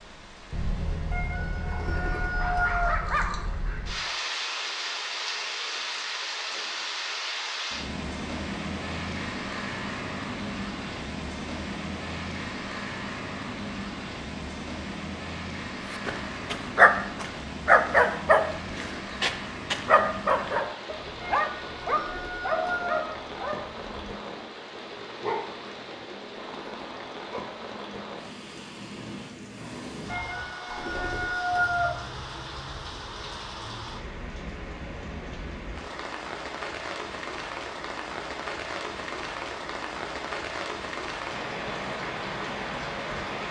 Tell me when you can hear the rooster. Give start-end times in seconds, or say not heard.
1.1-3.0, 21.2-23.1, 30.1-32.0.